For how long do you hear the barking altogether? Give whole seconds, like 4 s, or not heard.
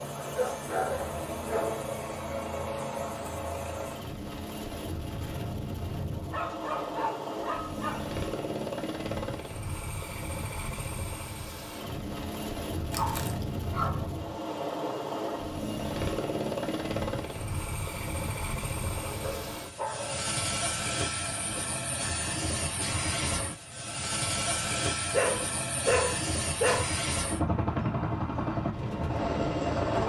8 s.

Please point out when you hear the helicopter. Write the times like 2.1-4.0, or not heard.
0.0-30.0.